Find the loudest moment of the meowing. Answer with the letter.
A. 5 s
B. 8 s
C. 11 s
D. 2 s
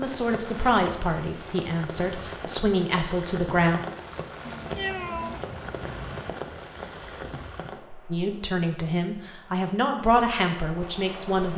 A.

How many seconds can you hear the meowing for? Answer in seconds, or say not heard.
2 s.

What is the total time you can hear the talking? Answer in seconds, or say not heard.
7 s.